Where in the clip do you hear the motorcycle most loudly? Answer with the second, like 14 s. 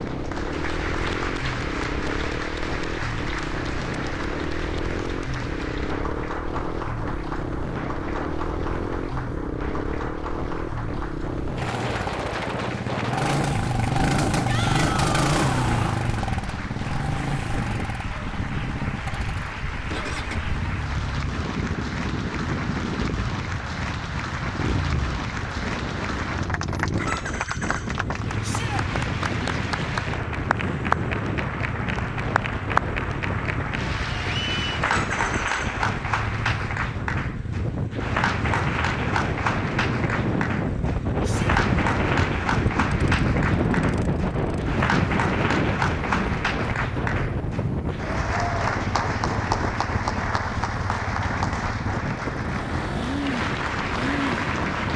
15 s.